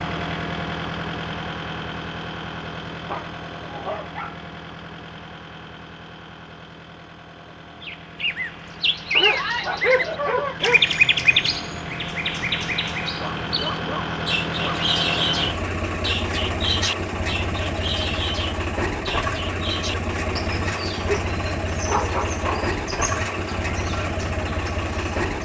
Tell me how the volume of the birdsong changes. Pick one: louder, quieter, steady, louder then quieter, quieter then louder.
quieter.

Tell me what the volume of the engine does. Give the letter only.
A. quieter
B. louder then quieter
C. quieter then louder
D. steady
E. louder
C.